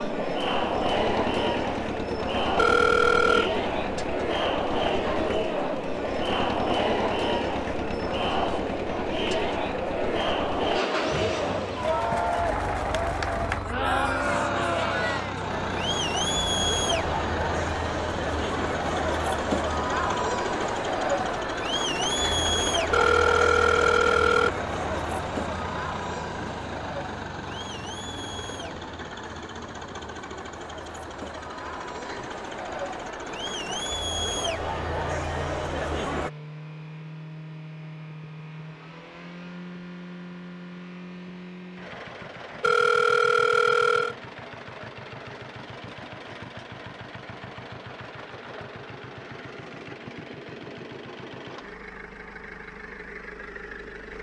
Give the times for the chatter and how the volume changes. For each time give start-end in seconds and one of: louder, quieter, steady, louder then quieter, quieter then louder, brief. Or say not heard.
0.0-36.3 quieter.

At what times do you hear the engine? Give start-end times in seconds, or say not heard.
0.0-54.1.